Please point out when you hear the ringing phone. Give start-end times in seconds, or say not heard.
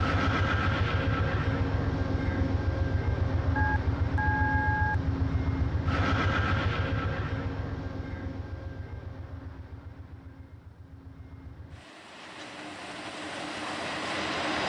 3.5-5.0.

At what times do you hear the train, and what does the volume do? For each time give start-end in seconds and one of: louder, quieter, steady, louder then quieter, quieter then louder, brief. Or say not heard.
0.0-14.6 quieter then louder.